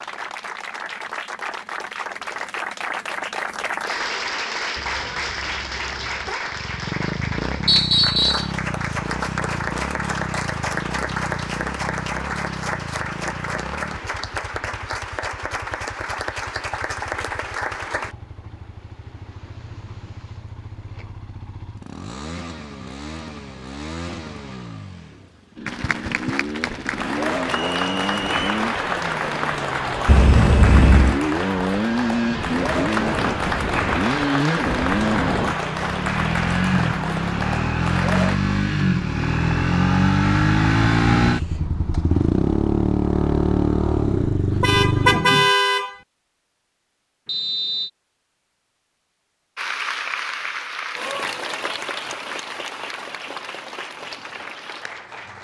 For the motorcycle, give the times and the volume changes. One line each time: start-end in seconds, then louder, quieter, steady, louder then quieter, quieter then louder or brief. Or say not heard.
6.5-45.5 quieter then louder.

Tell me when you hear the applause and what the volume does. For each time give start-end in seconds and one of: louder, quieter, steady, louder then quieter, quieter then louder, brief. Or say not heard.
0.0-18.1 steady
25.6-38.4 steady
49.5-55.3 quieter.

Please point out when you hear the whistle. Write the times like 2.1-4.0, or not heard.
7.7-8.5, 27.5-28.4, 47.2-47.9.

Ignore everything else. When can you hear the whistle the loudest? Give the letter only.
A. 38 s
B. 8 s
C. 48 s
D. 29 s
B.